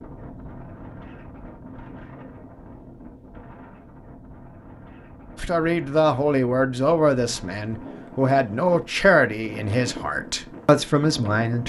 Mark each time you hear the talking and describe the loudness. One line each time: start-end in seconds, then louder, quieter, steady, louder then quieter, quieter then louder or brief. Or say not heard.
5.3-11.6 steady.